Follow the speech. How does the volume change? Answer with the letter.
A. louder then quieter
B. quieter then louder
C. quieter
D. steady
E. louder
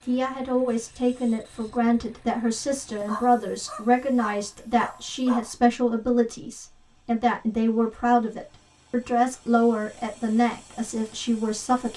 D.